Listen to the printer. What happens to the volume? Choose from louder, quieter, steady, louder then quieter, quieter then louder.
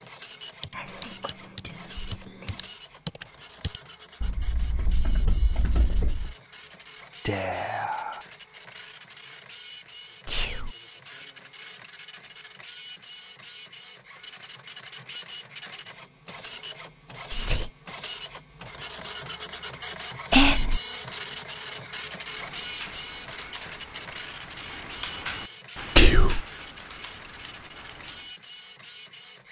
louder then quieter.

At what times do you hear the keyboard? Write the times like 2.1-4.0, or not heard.
0.6-6.3, 22.3-28.3.